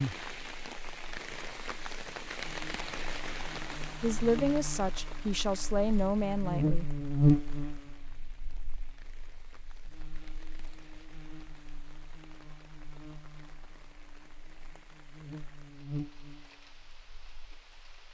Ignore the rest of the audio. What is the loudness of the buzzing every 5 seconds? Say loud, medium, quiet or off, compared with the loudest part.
quiet, loud, quiet, quiet.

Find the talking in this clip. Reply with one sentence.
The talking can be heard from 4.0 to 6.8 s.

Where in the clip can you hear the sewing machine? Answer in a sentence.
The sewing machine can't be heard in this clip.